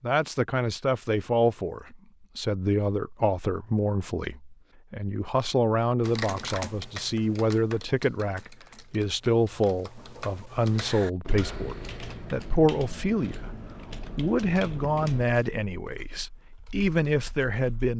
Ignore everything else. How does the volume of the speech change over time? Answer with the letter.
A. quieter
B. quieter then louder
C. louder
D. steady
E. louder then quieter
D.